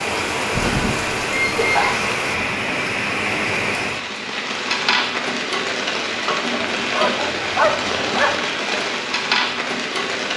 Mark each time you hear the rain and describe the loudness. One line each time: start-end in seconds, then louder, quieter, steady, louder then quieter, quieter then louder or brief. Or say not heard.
0.0-10.3 steady.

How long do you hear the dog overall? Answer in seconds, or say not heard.
3 s.